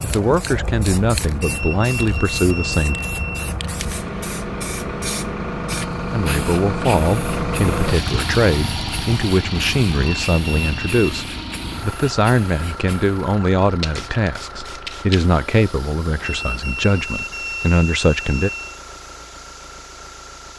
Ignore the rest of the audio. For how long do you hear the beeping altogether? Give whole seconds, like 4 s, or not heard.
6 s.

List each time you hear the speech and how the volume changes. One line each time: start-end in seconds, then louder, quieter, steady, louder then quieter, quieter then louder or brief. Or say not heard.
0.0-3.0 brief
6.1-18.5 steady.